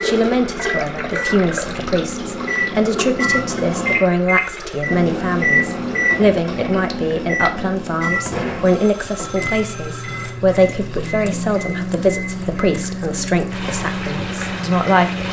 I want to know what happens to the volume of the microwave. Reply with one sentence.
The volume of the microwave goes up, then down.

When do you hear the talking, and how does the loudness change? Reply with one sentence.
You can hear the talking from 0.0 to 15.2 s, at a steady volume.